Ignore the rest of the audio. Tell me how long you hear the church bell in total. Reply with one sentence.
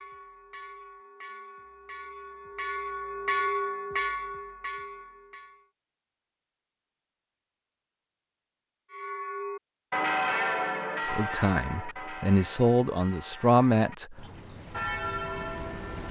You can hear the church bell for 13 seconds altogether.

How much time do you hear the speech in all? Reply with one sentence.
The speech can be heard for 3 seconds in total.